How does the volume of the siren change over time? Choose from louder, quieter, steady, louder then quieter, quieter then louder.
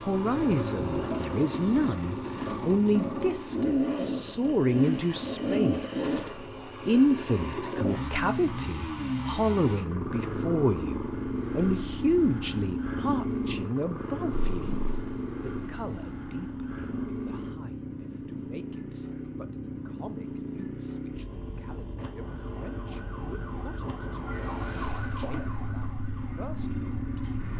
louder then quieter.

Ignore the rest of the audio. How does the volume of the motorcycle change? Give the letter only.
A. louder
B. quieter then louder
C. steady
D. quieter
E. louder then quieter
D.